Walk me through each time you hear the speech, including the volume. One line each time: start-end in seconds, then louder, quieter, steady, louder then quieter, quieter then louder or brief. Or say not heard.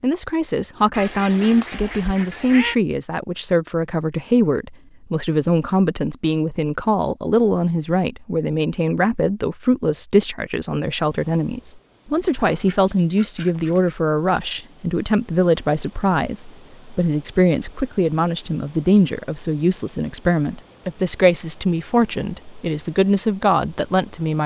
0.0-24.4 steady.